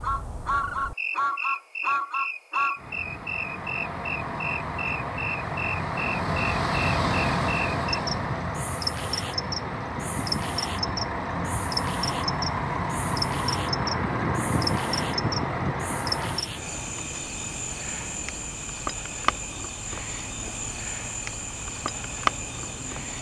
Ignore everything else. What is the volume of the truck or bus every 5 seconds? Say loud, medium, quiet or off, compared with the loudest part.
loud, loud, loud, medium, quiet.